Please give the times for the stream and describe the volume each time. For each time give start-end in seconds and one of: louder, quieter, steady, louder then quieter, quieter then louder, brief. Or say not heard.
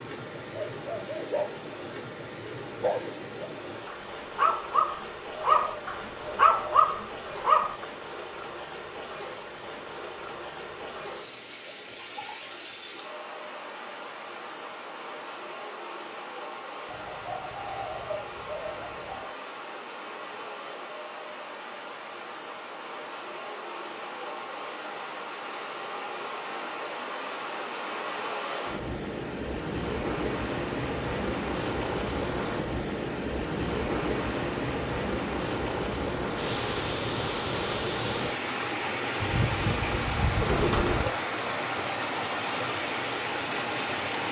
0.0-44.2 louder.